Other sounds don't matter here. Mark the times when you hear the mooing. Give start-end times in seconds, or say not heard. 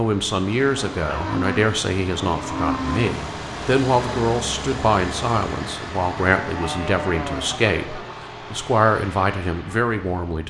0.7-3.1, 6.2-8.2.